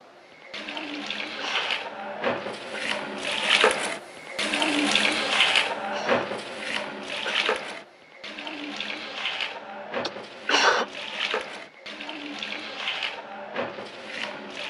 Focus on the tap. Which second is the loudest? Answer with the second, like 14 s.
5 s.